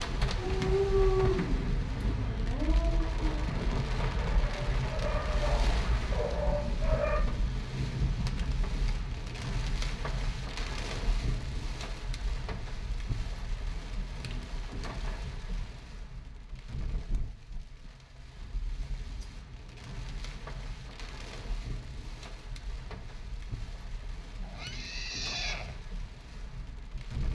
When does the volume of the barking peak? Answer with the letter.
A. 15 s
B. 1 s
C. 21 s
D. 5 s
B.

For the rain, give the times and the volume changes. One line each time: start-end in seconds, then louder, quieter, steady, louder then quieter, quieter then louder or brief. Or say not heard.
0.0-27.2 quieter.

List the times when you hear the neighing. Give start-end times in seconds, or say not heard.
24.4-25.8.